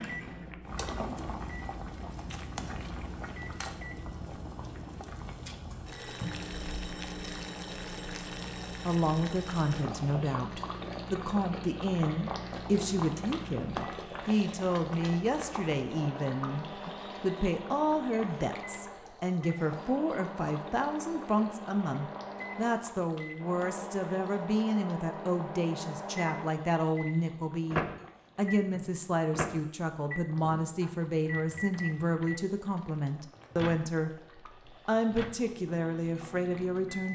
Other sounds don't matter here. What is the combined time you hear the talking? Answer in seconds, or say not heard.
28 s.